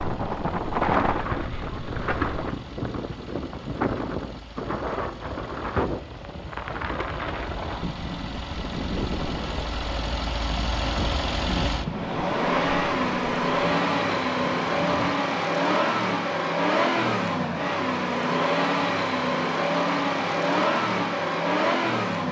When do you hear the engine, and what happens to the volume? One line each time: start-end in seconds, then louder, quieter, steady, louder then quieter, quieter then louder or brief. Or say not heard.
0.0-22.2 louder.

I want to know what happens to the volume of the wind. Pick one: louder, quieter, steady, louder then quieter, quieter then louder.
quieter.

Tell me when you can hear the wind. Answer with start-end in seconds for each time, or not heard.
0.0-15.2.